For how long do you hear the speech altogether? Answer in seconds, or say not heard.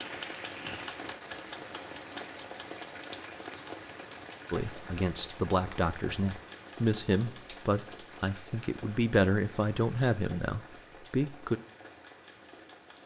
7 s.